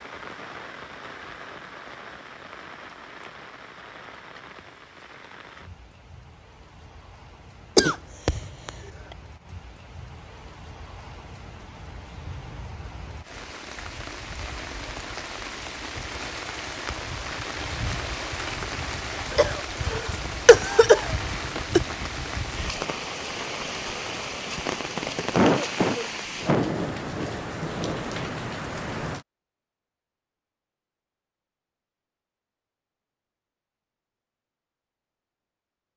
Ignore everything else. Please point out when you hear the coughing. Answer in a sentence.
You can hear the coughing from 7.8 to 8.7 s, from 19.4 to 21.8 s and from 25.4 to 26.7 s.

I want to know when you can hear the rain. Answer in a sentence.
The rain can be heard from 0.0 to 29.2 s.